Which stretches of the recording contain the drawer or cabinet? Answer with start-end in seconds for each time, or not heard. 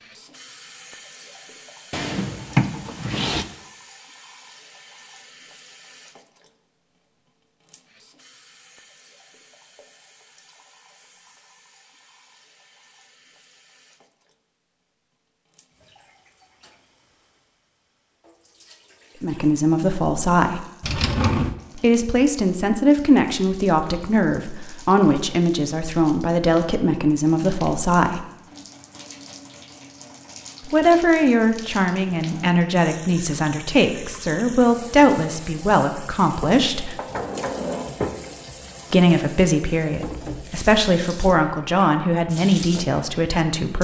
1.9-3.5, 20.8-21.6, 36.4-38.2.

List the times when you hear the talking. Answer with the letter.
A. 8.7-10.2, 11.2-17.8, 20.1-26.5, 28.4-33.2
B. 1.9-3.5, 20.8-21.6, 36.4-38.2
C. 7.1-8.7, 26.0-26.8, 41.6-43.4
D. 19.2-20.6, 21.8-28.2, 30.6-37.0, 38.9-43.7
D.